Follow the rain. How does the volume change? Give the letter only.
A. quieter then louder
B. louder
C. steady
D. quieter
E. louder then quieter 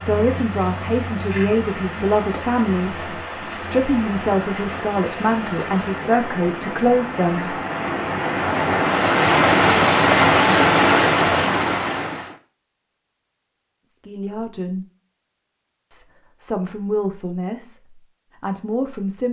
B.